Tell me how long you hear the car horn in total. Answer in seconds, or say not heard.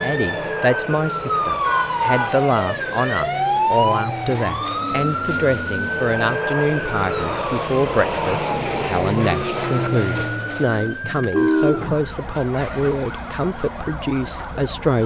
2 s.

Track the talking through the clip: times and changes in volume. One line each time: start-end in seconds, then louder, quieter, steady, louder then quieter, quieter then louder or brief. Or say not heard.
0.0-15.0 steady.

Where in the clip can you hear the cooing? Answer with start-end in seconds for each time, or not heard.
not heard.